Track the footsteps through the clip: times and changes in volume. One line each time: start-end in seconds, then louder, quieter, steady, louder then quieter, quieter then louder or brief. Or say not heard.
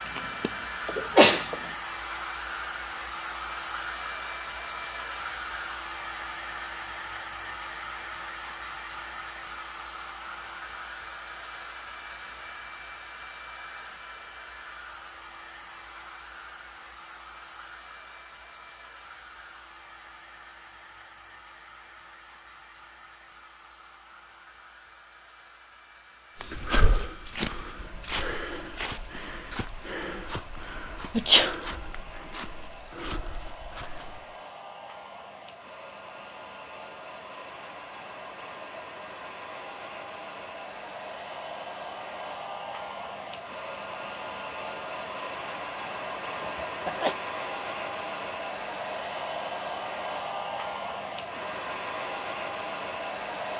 26.4-34.2 quieter.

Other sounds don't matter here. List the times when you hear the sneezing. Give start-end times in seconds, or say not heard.
0.1-1.6, 31.1-31.6, 46.4-47.1.